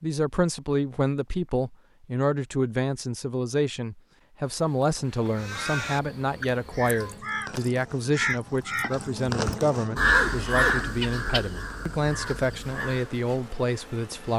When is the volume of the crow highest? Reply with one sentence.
The loudest moment of the crow is at 10 seconds.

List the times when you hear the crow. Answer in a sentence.
The crow can be heard from 5.0 to 13.2 s.